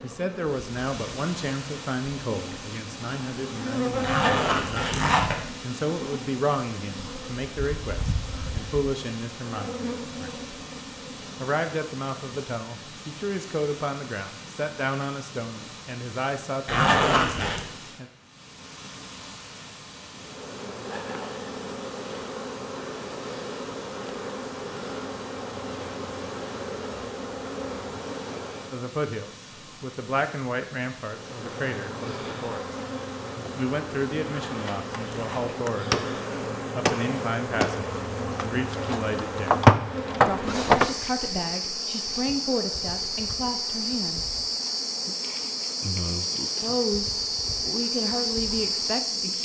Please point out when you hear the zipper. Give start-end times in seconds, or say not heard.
4.0-5.5, 16.6-17.6, 34.2-35.6.